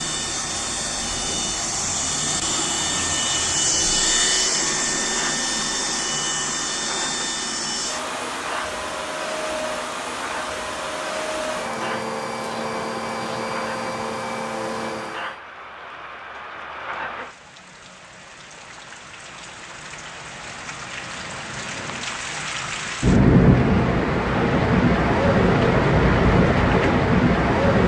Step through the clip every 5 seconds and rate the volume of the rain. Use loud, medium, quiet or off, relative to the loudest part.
quiet, quiet, quiet, quiet, loud, loud.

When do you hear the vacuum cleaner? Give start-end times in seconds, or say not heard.
0.0-15.4.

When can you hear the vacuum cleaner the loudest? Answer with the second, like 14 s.
4 s.